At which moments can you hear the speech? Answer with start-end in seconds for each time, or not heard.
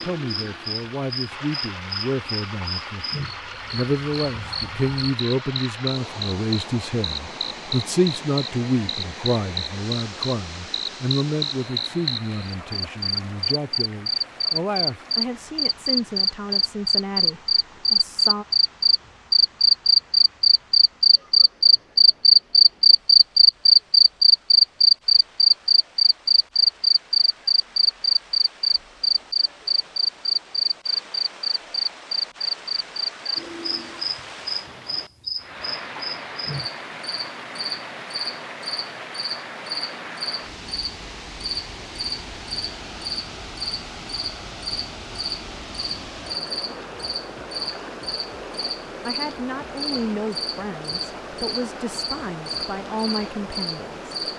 0.0-18.4, 49.0-54.2.